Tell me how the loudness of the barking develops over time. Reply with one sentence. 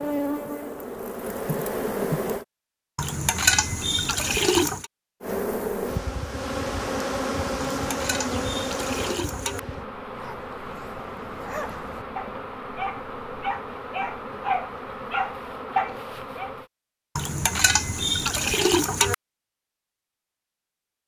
The loudness of the barking goes up.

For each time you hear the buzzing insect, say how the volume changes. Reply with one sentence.
You can hear the buzzing insect briefly from 0.0 to 2.5 s; and from 5.2 to 16.7 s, getting quieter.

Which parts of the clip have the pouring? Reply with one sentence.
You can hear the pouring from 3.0 to 4.8 s, from 7.6 to 9.6 s and from 17.1 to 19.1 s.